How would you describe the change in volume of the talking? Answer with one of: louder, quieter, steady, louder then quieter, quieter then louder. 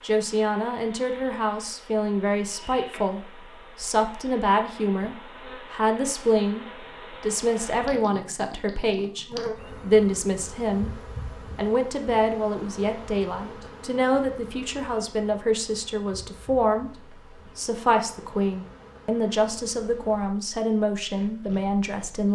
steady.